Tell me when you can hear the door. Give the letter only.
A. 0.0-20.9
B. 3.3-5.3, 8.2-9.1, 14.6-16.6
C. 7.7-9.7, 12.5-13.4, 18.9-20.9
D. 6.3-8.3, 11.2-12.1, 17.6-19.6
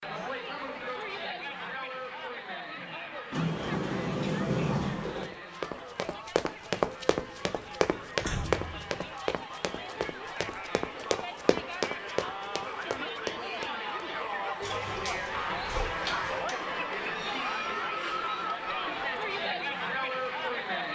B.